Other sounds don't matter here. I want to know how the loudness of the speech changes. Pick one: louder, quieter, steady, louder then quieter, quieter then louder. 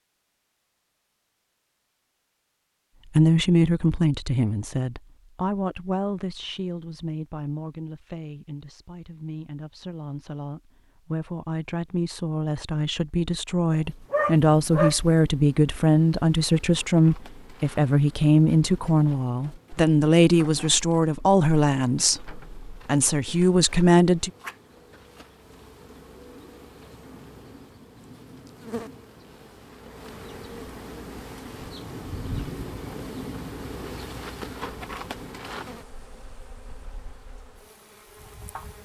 quieter then louder.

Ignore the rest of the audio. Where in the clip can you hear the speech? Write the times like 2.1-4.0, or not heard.
3.1-24.3.